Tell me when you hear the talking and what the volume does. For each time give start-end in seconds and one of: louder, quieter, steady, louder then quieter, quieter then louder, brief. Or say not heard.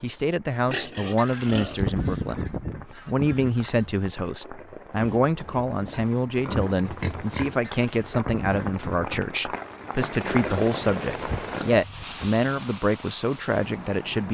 0.0-14.2 steady.